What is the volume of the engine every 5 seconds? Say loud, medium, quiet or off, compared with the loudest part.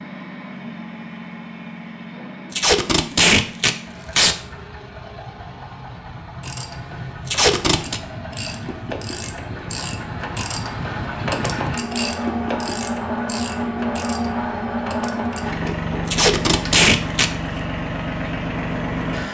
medium, medium, loud, loud.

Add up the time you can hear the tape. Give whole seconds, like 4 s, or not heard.
4 s.